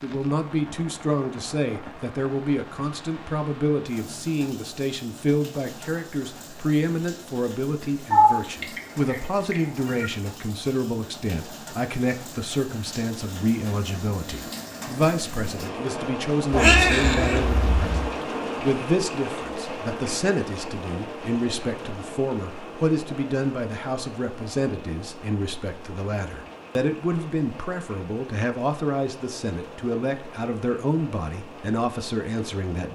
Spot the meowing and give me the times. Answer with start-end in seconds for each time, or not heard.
8.1-10.1, 16.5-18.1.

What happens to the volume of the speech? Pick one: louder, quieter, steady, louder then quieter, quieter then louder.
steady.